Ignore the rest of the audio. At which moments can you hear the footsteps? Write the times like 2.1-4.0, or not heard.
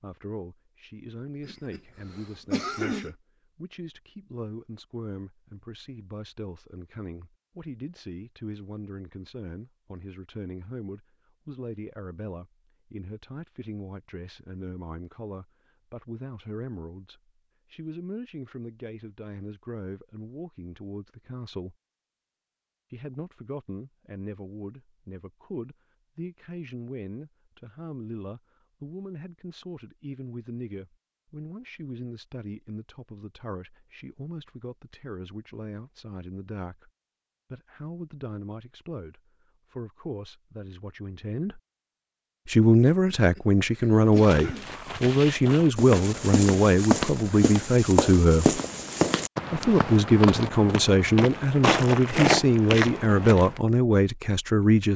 44.0-53.6.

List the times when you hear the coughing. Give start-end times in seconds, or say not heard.
1.4-3.1, 43.0-44.7.